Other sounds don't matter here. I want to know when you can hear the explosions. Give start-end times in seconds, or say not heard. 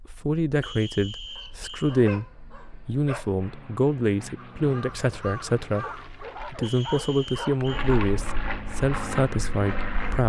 not heard.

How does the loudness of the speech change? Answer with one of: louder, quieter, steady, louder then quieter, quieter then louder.
steady.